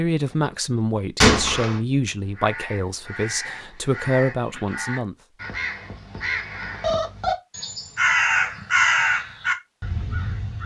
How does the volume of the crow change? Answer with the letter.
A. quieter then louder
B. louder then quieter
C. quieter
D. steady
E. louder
E.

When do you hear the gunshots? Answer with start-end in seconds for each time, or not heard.
1.2-1.8.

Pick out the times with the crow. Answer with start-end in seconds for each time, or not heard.
2.3-10.6.